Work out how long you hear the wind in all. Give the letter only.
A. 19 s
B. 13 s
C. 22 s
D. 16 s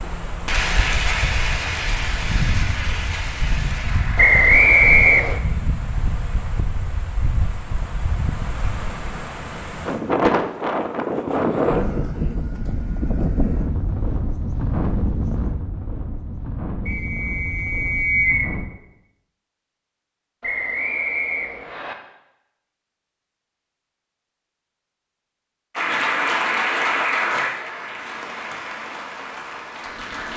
A.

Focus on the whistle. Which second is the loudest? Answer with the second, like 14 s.
5 s.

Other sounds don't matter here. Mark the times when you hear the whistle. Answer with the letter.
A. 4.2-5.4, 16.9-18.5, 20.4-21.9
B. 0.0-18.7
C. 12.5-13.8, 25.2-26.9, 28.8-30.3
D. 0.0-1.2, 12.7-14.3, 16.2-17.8
A.